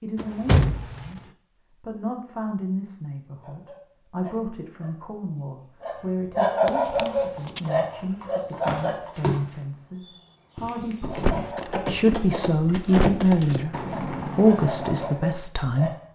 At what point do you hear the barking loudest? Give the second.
7 s.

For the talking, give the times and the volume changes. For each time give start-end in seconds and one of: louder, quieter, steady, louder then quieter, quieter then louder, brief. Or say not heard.
0.0-15.9 louder.